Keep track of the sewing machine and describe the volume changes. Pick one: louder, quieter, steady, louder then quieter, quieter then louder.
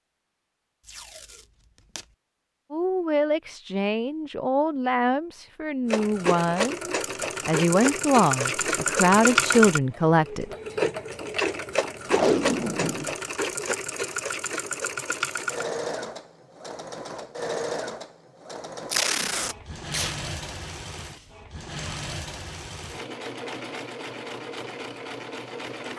quieter.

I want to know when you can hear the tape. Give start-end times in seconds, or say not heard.
0.8-2.0, 12.1-13.2, 18.9-20.1.